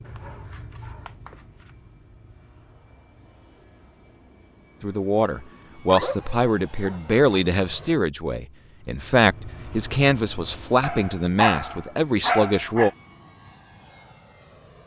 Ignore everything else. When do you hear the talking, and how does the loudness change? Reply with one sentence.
The talking can be heard from 4.8 to 12.9 s, at a steady volume.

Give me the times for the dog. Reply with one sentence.
You can hear the dog from 0.1 to 1.7 s, from 5.8 to 7.2 s and from 10.8 to 12.9 s.